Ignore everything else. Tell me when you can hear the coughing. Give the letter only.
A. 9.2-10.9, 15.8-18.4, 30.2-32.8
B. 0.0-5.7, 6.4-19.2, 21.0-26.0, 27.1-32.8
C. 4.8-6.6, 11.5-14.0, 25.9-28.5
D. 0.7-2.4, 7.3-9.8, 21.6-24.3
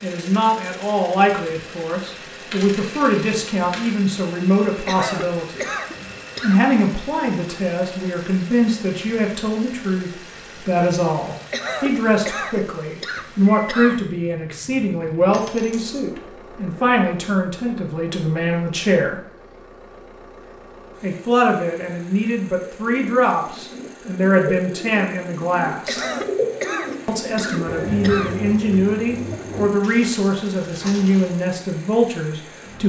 C.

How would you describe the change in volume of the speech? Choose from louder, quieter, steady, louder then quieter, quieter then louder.
steady.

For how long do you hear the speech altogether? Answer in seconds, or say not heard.
29 s.